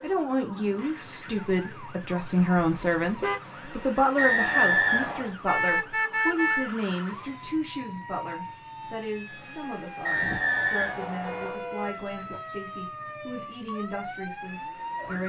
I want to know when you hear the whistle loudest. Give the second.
5 s.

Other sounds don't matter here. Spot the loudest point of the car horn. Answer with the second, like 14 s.
6 s.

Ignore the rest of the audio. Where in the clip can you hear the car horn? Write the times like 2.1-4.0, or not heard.
2.5-3.4, 5.5-6.7, 10.2-12.4.